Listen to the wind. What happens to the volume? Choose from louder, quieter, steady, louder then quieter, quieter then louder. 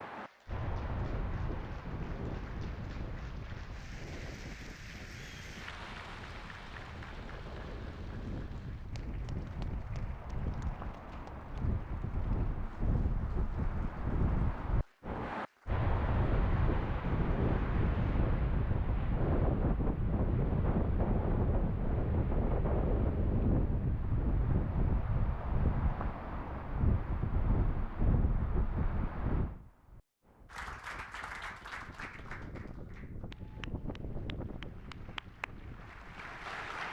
louder then quieter.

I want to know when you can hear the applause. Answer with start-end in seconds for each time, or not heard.
0.1-18.2, 30.5-36.8.